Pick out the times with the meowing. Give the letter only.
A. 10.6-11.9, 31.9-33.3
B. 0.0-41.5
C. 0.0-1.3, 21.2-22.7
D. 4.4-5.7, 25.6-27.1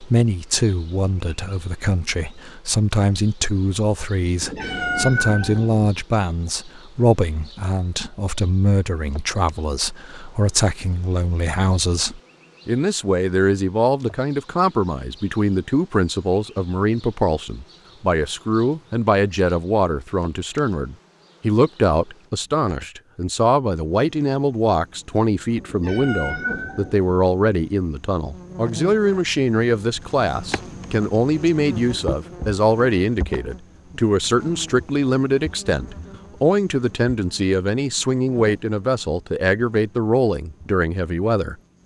D.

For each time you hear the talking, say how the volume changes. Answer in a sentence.
The talking can be heard from 0.0 to 41.5 s, at a steady volume.